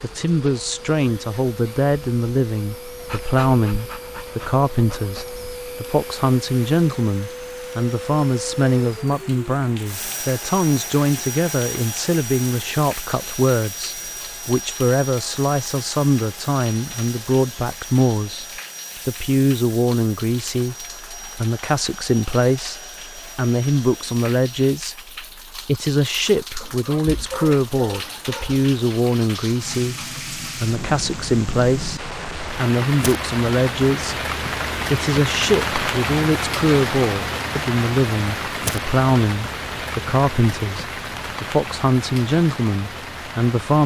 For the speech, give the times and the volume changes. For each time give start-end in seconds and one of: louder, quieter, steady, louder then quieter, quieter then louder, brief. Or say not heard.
0.0-43.8 steady.